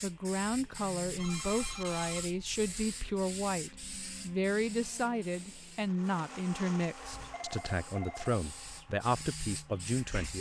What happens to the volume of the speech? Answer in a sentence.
The volume of the speech stays about the same.